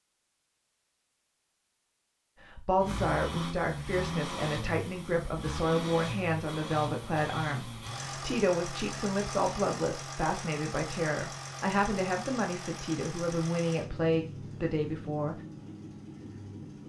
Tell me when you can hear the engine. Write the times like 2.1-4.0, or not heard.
2.8-16.8.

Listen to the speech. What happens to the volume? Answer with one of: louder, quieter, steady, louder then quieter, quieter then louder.
steady.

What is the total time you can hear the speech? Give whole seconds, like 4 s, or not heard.
13 s.